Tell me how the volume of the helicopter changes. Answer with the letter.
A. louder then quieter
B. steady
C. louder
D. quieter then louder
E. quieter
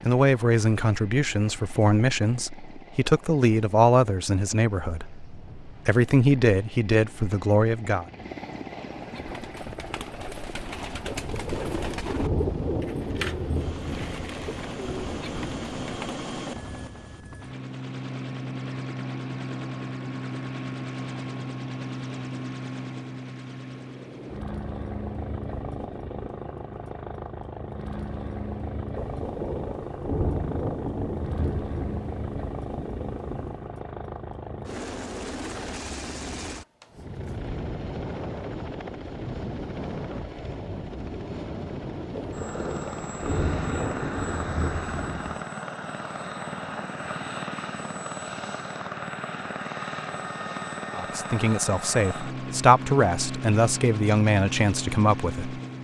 C.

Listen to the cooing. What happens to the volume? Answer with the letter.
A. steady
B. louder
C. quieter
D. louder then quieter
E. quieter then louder
D.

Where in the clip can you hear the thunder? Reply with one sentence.
You can hear the thunder from 11.1 to 16.0 s, from 28.9 to 33.6 s and from 42.1 to 45.4 s.